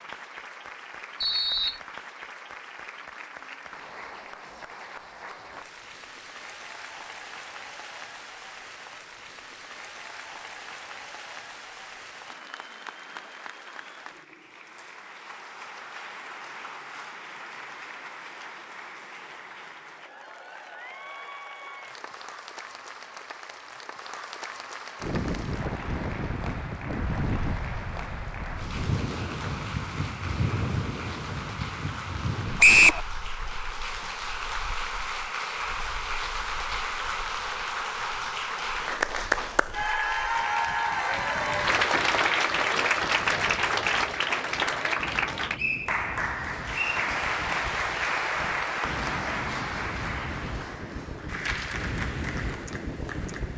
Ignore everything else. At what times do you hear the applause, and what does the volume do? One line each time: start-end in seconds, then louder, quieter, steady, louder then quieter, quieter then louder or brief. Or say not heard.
0.0-53.5 louder.